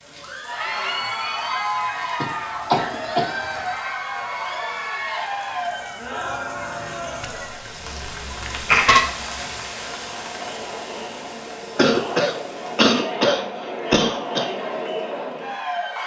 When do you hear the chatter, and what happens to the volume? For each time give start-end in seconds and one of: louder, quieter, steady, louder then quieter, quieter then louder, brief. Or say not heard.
0.1-16.0 quieter then louder.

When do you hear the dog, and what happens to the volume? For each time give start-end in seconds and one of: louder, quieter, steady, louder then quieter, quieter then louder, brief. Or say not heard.
not heard.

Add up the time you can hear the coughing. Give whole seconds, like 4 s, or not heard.
6 s.